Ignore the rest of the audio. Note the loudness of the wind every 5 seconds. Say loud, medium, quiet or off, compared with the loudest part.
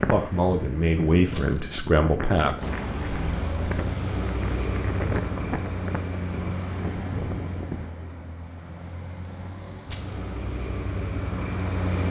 loud, loud, off.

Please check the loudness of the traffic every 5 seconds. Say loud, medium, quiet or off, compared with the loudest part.
loud, medium, loud.